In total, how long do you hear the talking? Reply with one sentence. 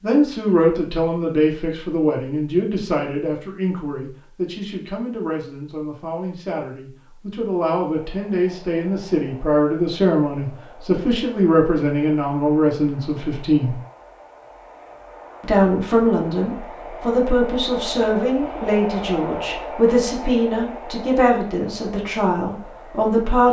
You can hear the talking for 22 seconds altogether.